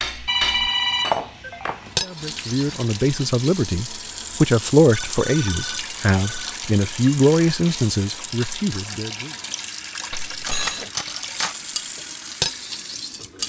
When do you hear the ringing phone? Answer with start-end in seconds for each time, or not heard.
0.2-2.0, 4.9-6.6, 10.1-10.8.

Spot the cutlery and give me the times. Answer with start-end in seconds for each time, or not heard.
0.0-2.8, 10.4-13.4.